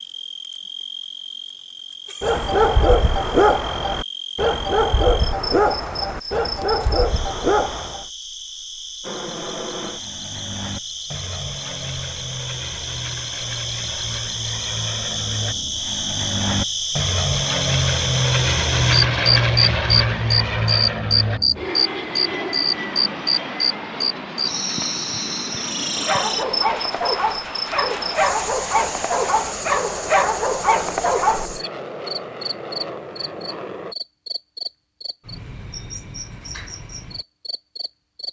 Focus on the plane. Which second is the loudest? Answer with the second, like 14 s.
19 s.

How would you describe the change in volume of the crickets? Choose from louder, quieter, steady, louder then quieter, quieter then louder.
louder then quieter.